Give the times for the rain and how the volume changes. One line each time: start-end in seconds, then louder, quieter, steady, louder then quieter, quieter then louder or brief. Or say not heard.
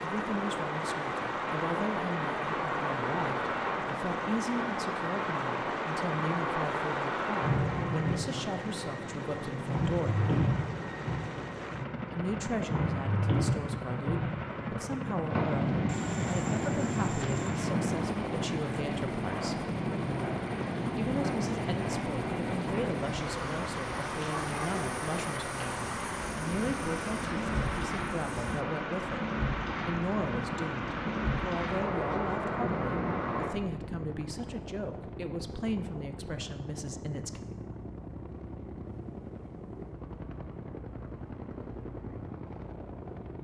0.0-33.5 steady.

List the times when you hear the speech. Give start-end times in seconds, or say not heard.
0.0-10.2, 12.1-19.6, 20.9-29.2, 29.9-37.4.